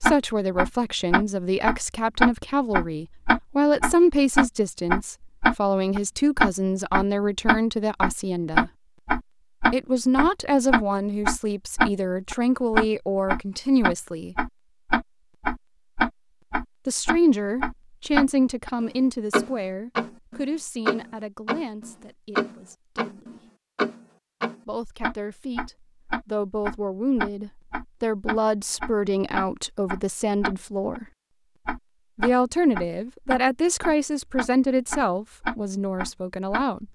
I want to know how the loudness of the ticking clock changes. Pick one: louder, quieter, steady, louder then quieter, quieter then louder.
quieter.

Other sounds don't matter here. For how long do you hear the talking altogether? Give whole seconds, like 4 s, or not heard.
31 s.